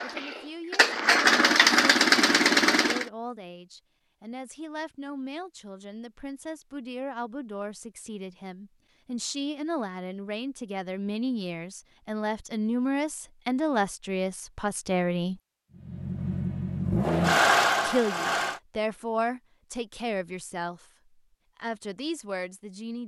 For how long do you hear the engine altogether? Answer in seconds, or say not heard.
6 s.